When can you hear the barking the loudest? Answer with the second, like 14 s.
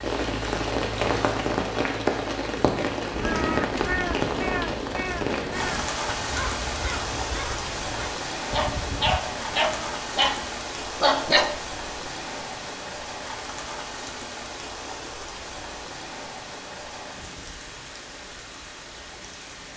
11 s.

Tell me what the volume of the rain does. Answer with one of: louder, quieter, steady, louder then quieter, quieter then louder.
quieter.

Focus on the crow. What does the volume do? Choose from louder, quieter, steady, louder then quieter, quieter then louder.
quieter.